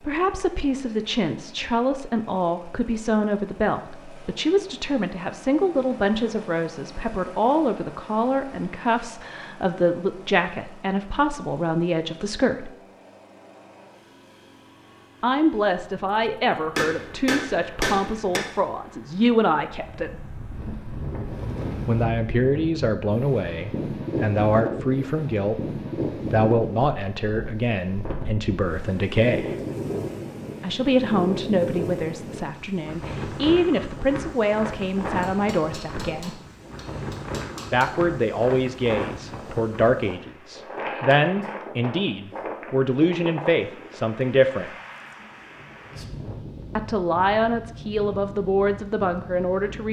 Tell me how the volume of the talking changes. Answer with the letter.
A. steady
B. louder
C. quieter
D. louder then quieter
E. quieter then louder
A.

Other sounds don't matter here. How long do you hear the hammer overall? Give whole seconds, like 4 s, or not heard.
4 s.